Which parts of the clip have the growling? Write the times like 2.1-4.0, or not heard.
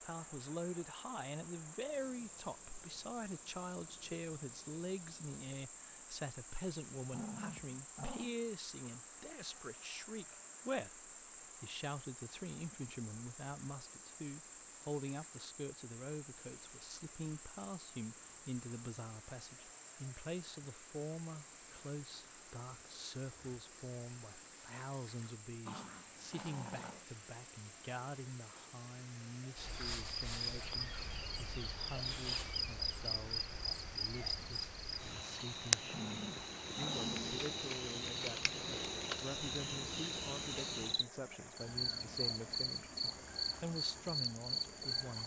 7.1-8.3, 25.6-27.1, 35.9-37.4.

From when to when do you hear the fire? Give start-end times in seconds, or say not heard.
not heard.